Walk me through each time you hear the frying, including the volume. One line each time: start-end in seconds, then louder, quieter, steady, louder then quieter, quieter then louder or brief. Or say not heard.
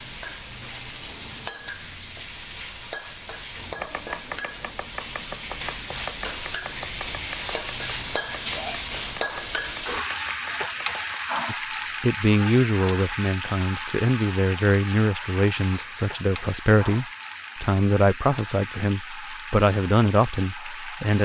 0.0-21.2 louder then quieter.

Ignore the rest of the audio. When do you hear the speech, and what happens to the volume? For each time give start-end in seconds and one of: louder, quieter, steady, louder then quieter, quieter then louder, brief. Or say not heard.
11.4-21.2 steady.